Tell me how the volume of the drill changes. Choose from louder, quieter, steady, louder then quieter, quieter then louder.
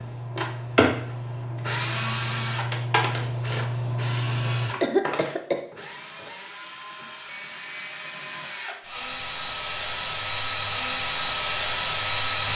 quieter then louder.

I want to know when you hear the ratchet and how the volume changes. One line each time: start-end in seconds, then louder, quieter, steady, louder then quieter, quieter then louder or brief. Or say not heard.
not heard.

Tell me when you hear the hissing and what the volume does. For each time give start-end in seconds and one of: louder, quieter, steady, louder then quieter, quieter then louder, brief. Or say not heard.
0.0-4.7 louder.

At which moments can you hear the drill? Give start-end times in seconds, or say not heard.
0.0-12.5.